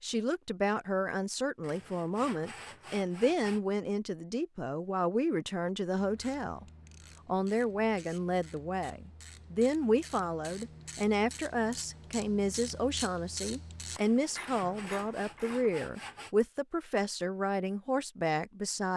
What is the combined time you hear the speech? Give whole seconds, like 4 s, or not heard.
18 s.